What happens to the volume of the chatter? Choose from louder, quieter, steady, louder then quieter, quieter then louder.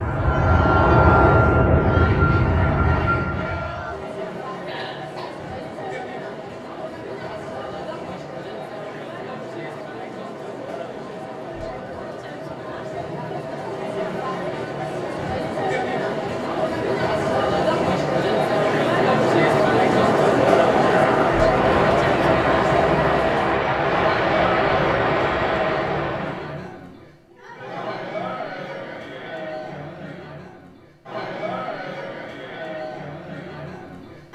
louder then quieter.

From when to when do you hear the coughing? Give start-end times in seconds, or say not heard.
4.7-5.4.